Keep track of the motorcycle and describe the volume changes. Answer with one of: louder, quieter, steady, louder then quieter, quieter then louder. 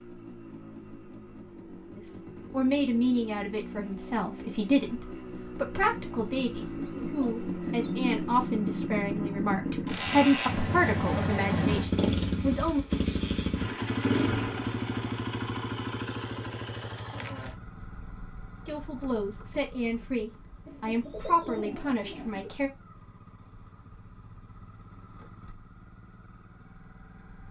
louder then quieter.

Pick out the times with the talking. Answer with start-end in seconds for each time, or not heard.
1.9-12.8, 18.6-22.7.